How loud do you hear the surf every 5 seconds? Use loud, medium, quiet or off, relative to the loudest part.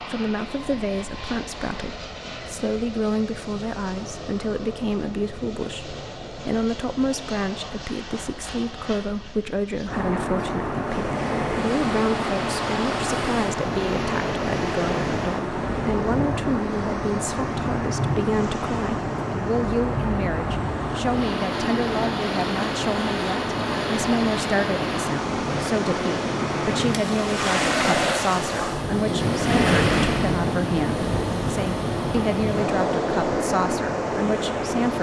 off, off, medium, medium, medium, loud, loud.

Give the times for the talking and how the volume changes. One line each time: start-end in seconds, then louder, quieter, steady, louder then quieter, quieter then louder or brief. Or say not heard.
0.0-34.9 steady.